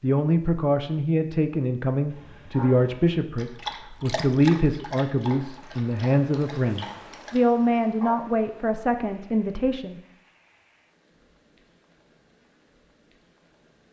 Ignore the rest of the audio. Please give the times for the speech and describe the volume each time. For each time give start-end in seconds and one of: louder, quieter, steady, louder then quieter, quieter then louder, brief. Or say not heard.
0.0-10.0 steady.